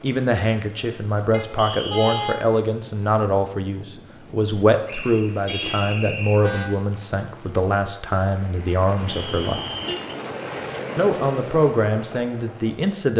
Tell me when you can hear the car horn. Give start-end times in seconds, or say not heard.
1.3-2.4, 5.5-6.7, 9.0-10.0.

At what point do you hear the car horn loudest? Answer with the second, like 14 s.
2 s.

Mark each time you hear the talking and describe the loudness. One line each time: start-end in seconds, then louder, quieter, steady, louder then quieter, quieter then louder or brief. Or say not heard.
0.0-9.6 steady
10.9-13.1 brief.